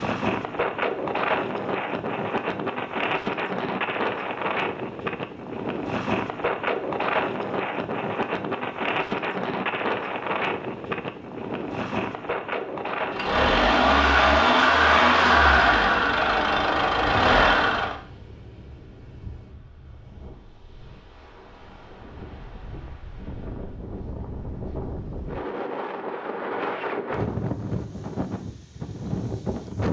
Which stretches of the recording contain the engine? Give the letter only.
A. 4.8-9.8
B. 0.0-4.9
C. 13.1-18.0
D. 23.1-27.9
C.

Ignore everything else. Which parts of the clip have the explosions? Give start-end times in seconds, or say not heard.
not heard.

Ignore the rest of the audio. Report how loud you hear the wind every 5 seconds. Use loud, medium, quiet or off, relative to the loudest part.
loud, loud, loud, quiet, quiet, loud.